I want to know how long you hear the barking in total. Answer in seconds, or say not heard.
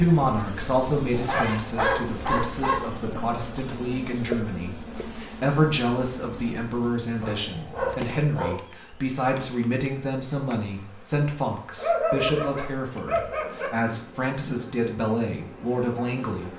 5 s.